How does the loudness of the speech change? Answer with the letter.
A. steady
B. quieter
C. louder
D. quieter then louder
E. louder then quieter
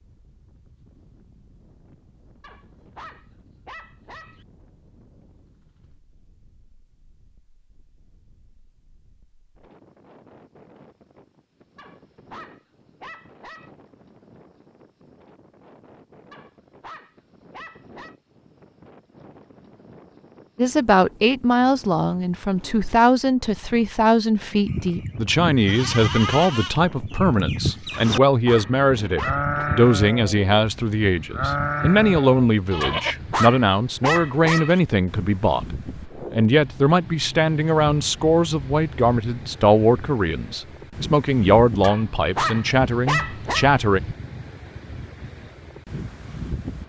A.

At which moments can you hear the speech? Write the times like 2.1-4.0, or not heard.
20.6-44.0.